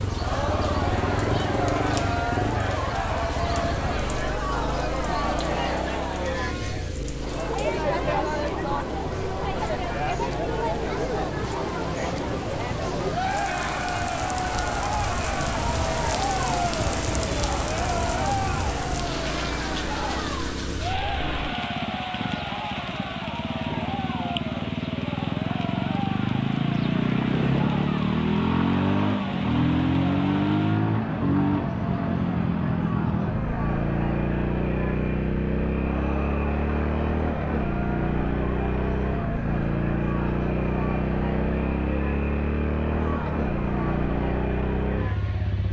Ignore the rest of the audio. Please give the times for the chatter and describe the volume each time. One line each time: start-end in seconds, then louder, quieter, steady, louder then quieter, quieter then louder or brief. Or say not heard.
0.0-45.5 quieter.